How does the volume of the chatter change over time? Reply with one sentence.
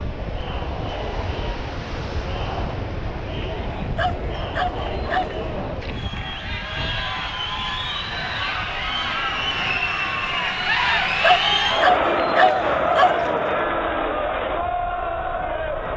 The loudness of the chatter goes up.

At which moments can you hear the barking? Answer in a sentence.
The barking can be heard from 3.8 to 5.5 s and from 11.1 to 13.2 s.